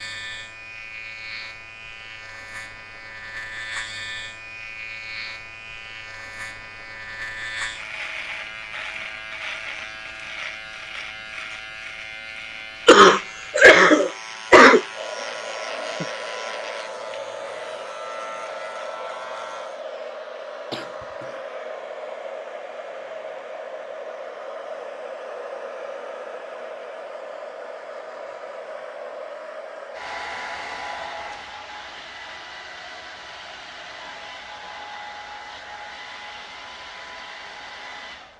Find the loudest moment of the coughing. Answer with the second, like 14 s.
14 s.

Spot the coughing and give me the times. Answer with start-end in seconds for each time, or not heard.
12.8-14.8, 20.7-21.4.